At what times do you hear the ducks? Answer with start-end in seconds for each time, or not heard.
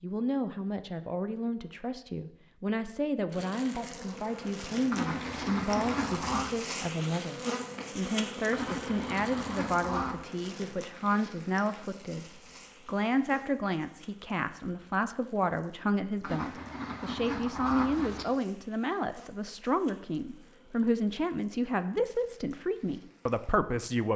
4.9-6.5, 8.5-10.2, 16.2-18.2.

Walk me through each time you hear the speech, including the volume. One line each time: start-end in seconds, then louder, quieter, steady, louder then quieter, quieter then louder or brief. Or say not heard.
0.0-24.1 steady.